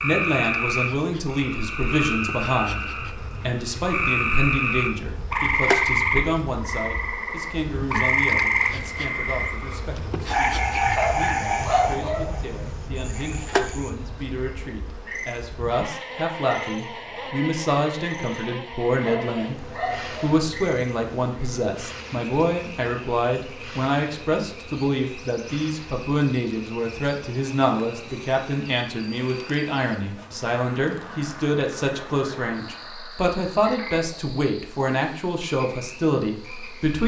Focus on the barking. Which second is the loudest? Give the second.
12 s.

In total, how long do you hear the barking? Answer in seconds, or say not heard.
3 s.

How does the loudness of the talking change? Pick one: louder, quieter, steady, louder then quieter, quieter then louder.
quieter then louder.